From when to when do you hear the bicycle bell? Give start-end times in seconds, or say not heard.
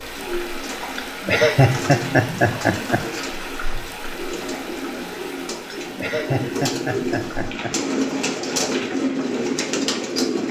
not heard.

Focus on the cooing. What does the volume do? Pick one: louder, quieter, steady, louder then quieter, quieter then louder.
louder.